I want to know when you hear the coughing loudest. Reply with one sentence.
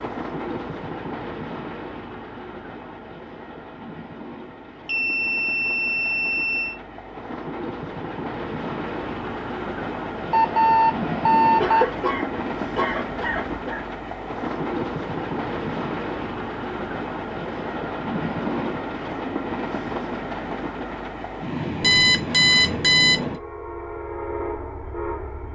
The loudest moment of the coughing is at 12 seconds.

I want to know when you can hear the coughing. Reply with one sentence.
You can hear the coughing from 11.6 to 13.8 s.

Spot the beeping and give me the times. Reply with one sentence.
The beeping can be heard from 4.8 to 6.8 s, from 10.3 to 11.9 s and from 21.8 to 23.2 s.